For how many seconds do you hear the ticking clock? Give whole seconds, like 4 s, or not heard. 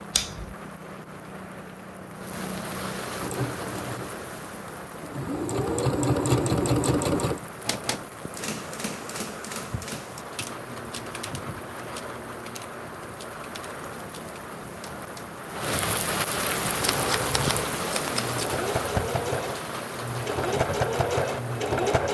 not heard.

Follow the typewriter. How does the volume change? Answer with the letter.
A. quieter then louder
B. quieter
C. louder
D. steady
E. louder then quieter
B.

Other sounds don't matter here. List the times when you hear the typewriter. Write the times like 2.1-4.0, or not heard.
7.6-15.3.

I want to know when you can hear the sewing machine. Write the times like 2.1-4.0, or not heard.
3.1-7.4, 16.8-22.0.